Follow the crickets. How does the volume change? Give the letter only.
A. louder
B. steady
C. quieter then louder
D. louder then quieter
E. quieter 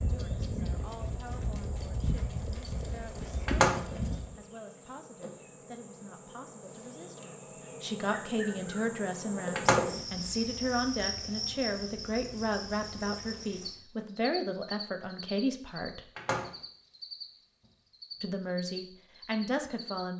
D.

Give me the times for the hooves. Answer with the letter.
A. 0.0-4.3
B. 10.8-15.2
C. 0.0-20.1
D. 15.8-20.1
A.